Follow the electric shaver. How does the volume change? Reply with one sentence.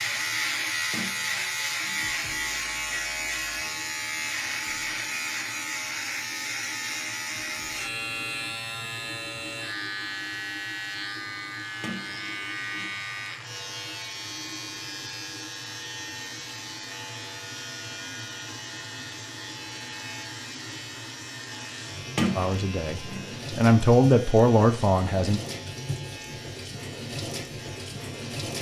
The loudness of the electric shaver goes down.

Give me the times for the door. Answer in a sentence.
You can hear the door from 0.9 to 2.1 s, from 11.8 to 13.0 s and from 22.1 to 23.3 s.